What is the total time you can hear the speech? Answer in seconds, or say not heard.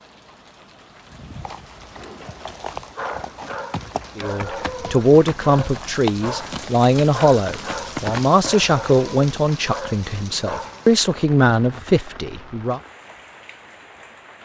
9 s.